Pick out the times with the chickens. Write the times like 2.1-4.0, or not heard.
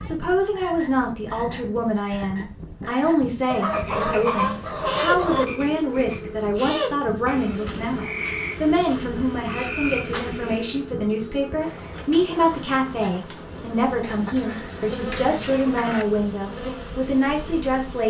3.5-5.5, 14.0-16.1.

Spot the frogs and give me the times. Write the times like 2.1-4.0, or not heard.
0.0-10.8.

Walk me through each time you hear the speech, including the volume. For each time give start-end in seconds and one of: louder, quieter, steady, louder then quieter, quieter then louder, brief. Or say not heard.
0.0-18.0 steady.